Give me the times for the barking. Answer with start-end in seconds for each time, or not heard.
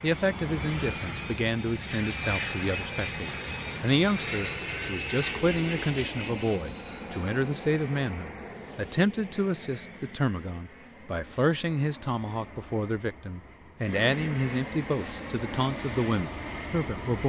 not heard.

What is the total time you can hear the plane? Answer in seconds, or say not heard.
17 s.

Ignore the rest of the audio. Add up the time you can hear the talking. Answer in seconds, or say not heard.
17 s.